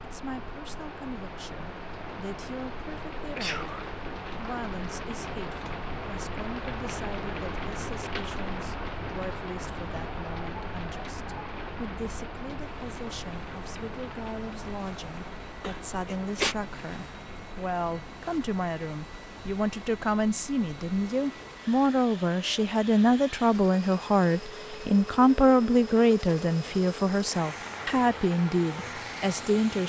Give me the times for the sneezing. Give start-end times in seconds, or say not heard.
3.4-4.0, 15.6-16.6.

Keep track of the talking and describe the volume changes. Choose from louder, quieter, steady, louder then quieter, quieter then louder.
louder.